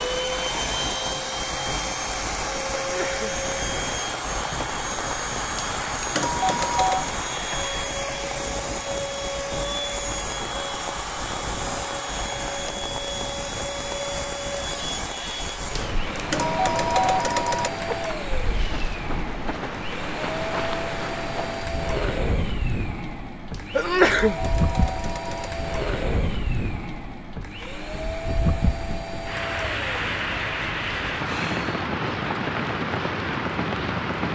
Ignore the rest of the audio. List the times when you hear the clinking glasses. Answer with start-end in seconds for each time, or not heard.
not heard.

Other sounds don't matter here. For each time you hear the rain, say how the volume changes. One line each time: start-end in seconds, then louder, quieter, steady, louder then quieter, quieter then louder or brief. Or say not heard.
0.0-34.3 louder.